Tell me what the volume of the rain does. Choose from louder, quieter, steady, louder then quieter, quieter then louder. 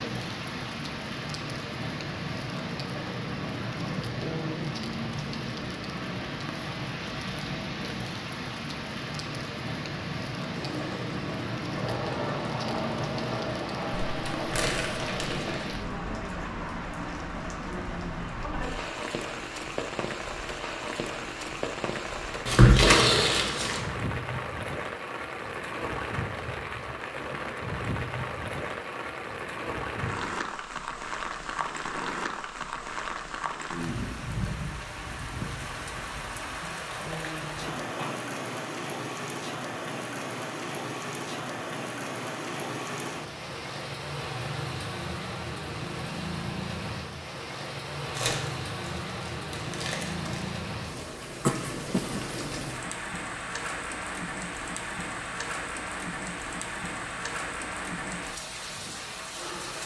steady.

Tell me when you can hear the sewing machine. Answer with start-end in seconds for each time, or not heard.
10.5-15.7.